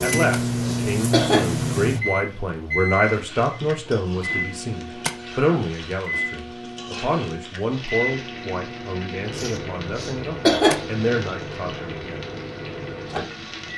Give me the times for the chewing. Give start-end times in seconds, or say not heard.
not heard.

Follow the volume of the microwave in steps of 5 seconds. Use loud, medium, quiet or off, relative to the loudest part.
loud, medium, medium.